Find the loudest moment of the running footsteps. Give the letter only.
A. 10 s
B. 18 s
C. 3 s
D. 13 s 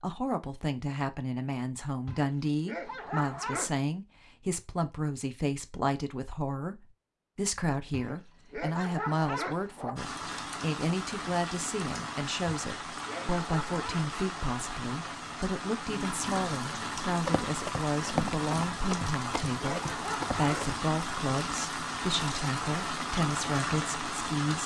B.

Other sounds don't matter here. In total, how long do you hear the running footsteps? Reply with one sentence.
The running footsteps can be heard for 4 seconds in total.